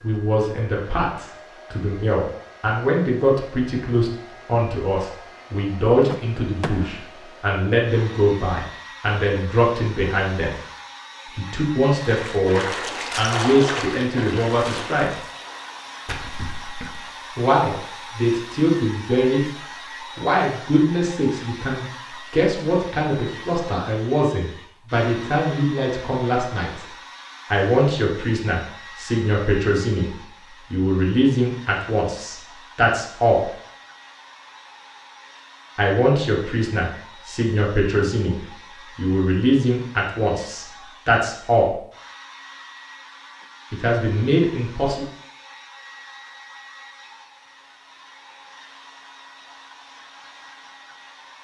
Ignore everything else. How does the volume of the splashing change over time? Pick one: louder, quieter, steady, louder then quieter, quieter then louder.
quieter then louder.